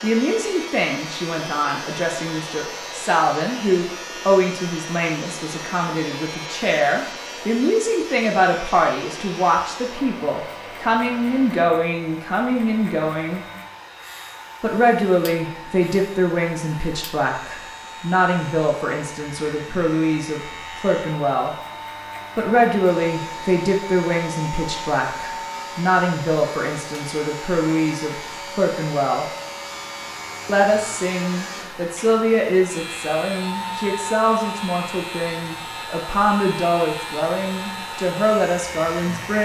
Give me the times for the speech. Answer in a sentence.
The speech can be heard from 0.0 to 13.4 s, from 14.6 to 21.5 s, from 22.4 to 29.2 s and from 30.4 to 39.4 s.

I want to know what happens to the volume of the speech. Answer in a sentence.
The volume of the speech stays about the same.